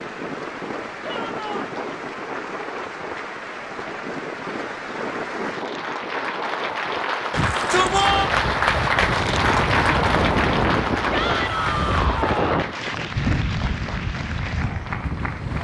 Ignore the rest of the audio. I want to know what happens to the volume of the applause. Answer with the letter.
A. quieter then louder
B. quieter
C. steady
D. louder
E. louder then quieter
E.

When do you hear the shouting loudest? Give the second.
8 s.